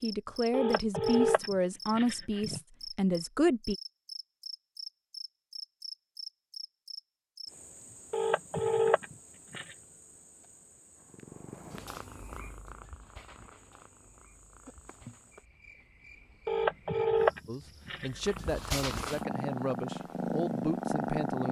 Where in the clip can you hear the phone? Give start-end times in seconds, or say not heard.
0.5-2.6, 8.1-9.8, 16.4-18.5.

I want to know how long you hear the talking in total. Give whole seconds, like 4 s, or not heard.
8 s.